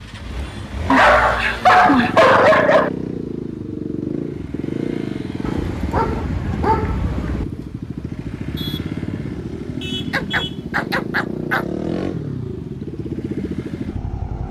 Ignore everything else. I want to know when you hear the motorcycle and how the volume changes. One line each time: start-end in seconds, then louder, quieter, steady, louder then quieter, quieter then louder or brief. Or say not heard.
0.0-14.4 steady.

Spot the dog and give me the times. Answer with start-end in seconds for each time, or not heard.
0.9-2.9, 5.5-7.5, 10.1-11.7.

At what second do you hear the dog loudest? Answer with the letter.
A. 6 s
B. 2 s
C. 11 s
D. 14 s
B.